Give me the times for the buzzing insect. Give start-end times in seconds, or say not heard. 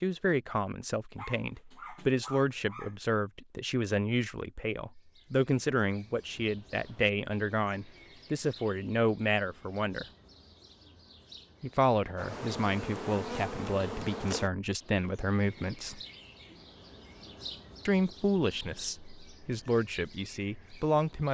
12.2-14.5.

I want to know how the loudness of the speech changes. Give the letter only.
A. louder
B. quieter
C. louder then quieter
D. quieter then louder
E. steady
E.